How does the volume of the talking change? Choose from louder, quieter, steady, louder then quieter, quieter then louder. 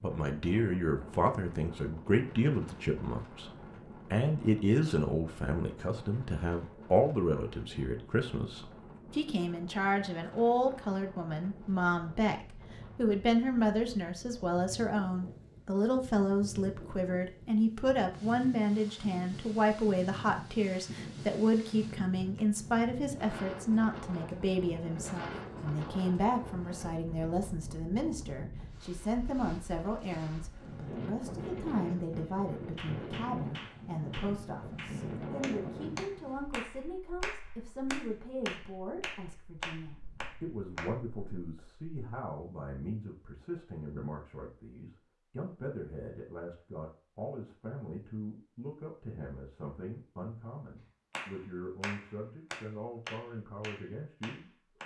quieter.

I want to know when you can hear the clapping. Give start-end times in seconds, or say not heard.
32.8-40.9, 51.1-54.8.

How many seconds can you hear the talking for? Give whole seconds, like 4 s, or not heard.
54 s.